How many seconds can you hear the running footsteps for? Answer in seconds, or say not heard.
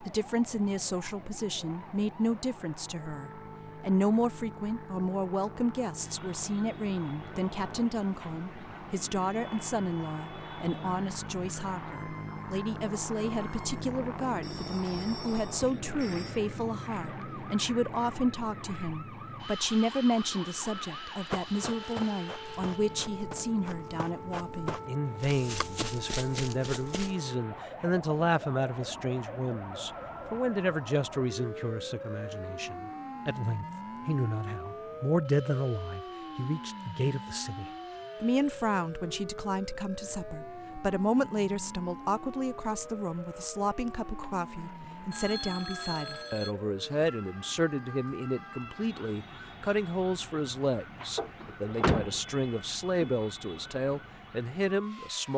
6 s.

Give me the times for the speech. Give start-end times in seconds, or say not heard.
0.0-55.3.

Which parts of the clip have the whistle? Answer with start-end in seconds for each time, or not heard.
not heard.